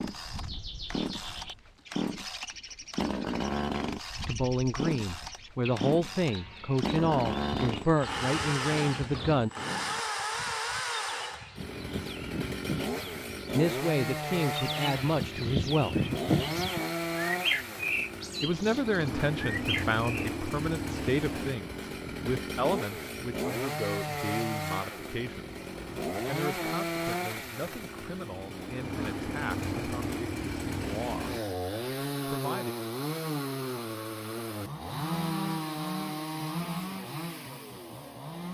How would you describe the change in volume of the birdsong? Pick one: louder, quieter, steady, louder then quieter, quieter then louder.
louder.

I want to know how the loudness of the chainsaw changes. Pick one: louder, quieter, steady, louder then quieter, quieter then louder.
steady.